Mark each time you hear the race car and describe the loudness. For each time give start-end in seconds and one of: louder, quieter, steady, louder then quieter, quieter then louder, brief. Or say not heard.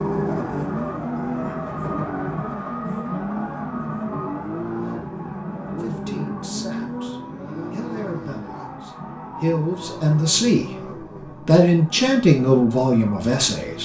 0.0-13.8 quieter.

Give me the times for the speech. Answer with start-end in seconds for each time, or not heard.
5.6-10.7, 11.3-13.8.